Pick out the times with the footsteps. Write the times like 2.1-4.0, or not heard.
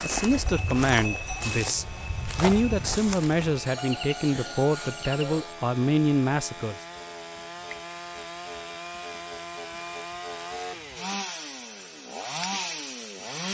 0.0-3.6.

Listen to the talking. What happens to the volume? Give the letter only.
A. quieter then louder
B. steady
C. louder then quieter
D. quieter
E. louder
B.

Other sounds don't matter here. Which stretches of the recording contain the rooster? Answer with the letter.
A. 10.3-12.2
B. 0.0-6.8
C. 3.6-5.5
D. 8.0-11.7
C.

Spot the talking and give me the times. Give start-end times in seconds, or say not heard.
0.0-6.8.